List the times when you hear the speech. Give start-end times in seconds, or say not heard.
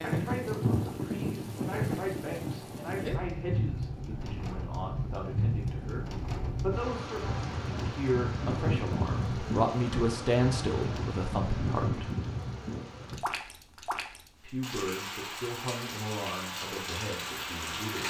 0.0-12.1, 14.4-18.0.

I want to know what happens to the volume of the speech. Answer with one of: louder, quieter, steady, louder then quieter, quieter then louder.
louder then quieter.